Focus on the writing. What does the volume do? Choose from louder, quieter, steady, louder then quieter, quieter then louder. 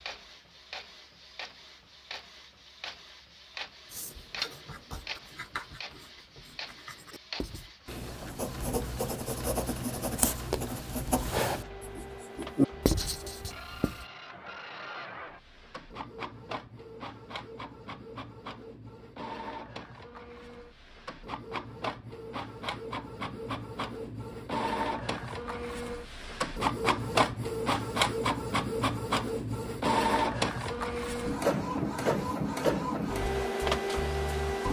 louder.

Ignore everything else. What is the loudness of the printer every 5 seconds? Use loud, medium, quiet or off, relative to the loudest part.
quiet, quiet, quiet, quiet, medium, loud, loud.